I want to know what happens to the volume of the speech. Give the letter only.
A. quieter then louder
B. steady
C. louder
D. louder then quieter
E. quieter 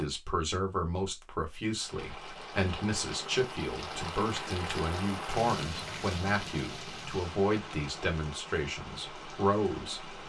B.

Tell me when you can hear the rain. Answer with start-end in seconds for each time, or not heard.
1.8-10.2.